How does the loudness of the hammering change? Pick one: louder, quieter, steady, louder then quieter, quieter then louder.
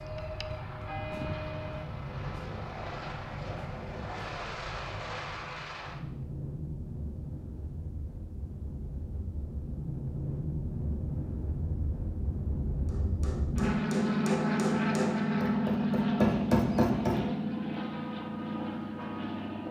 louder.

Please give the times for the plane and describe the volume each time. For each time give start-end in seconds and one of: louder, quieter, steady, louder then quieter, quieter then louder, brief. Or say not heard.
0.0-19.6 louder.